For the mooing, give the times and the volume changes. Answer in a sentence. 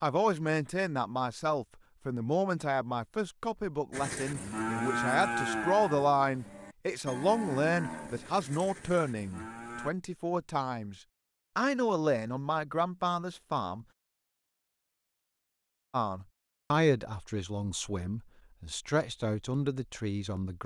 You can hear the mooing from 3.9 to 9.9 s, getting quieter.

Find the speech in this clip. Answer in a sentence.
You can hear the speech from 0.0 to 10.9 s, from 11.6 to 13.8 s and from 15.9 to 20.6 s.